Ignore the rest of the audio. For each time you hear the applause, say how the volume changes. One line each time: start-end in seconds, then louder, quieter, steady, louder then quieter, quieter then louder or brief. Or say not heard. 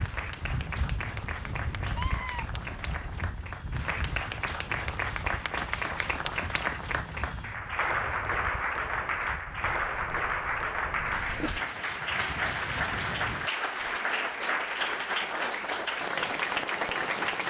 0.0-17.4 louder.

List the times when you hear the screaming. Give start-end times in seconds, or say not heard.
1.8-2.5.